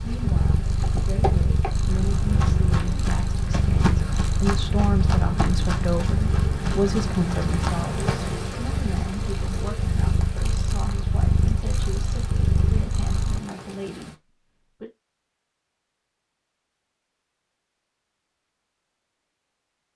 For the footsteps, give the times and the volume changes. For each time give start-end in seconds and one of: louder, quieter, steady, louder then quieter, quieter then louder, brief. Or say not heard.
0.8-8.4 steady.